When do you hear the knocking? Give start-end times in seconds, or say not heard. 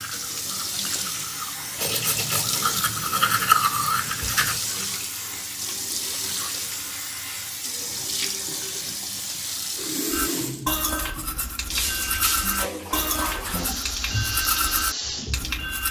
not heard.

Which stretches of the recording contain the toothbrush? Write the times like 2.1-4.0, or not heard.
0.0-4.7, 10.1-15.8.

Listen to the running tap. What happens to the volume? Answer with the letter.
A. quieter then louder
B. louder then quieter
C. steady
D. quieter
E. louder
C.